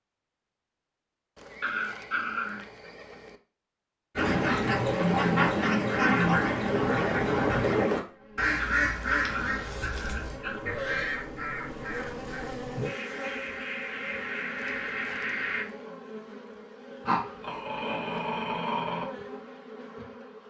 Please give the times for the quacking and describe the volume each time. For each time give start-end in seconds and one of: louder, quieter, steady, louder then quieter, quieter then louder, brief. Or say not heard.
4.2-15.7 quieter.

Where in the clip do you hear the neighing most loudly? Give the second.
11 s.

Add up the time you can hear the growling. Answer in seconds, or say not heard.
5 s.